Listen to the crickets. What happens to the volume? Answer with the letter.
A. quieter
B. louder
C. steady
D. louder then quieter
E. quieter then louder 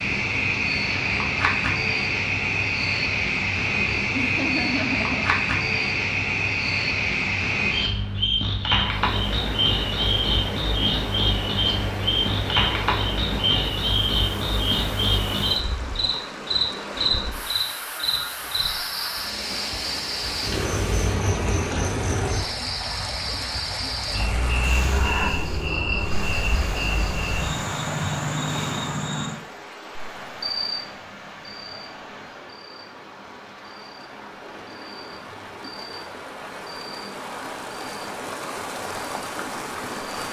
A.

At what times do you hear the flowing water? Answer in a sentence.
The flowing water can be heard from 8.7 to 40.2 s.